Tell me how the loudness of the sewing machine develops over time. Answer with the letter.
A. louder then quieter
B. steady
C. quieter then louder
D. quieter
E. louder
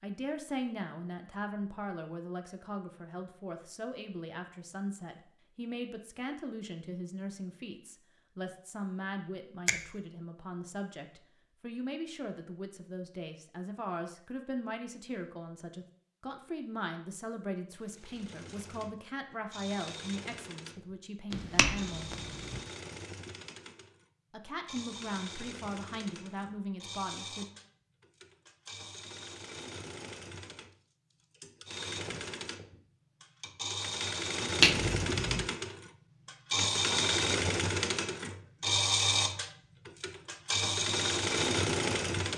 E.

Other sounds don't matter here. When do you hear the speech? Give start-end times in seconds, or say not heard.
0.0-22.1, 24.3-27.4.